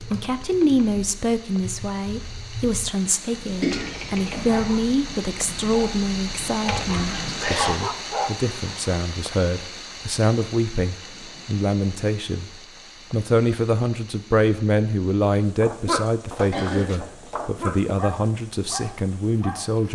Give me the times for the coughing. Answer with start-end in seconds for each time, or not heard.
3.6-4.8, 6.9-7.8, 16.5-17.0.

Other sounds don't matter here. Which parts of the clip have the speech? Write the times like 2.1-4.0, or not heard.
0.0-12.5, 13.1-19.9.